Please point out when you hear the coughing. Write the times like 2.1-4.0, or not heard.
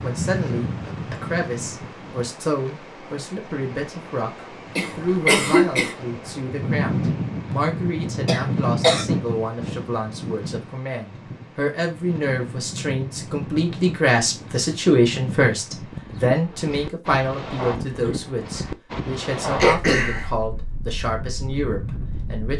4.8-6.0, 8.2-9.1, 19.6-20.2.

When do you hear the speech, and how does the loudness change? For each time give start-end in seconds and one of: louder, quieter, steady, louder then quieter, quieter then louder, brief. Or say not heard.
0.0-22.5 louder then quieter.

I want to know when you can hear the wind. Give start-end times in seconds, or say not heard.
0.0-22.5.